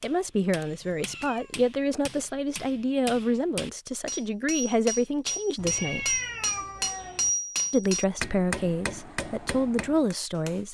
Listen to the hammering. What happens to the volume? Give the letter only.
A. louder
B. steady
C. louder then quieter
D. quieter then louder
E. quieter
C.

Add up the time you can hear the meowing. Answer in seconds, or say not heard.
3 s.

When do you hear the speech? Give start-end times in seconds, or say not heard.
0.0-6.2, 7.7-10.7.